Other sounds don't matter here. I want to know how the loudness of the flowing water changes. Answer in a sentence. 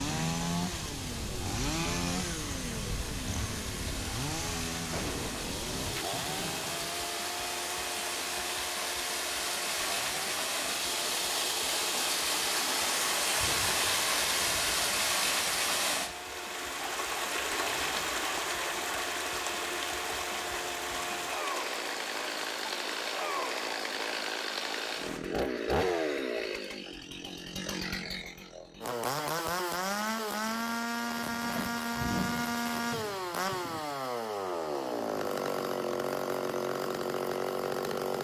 The loudness of the flowing water goes up, then down.